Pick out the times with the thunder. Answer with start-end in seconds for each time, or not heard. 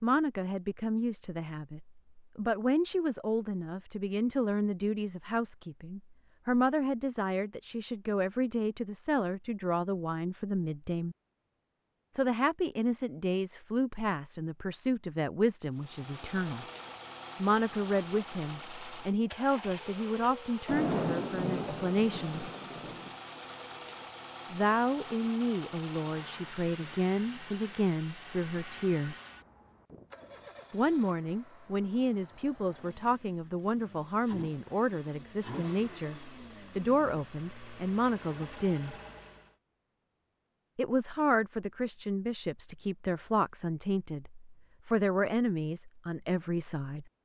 19.6-23.1.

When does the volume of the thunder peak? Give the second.
21 s.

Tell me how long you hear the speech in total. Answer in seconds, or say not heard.
40 s.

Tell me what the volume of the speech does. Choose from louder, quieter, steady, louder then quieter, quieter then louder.
steady.